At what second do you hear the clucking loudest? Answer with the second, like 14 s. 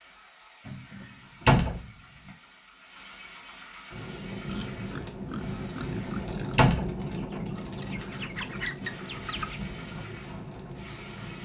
9 s.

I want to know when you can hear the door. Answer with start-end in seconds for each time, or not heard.
0.7-1.8, 5.8-6.9.